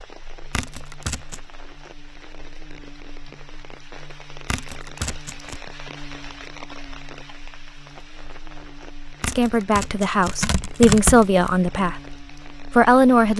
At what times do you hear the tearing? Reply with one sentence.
The tearing can be heard from 0.5 to 1.4 s, from 4.5 to 5.6 s and from 9.2 to 11.6 s.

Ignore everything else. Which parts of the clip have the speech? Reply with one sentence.
The speech can be heard from 9.2 to 13.3 s.